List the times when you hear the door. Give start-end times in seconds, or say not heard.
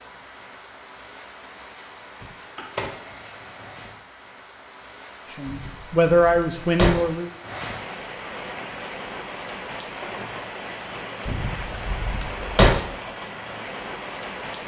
2.2-2.9, 5.5-6.9, 11.2-12.7.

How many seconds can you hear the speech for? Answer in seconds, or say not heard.
2 s.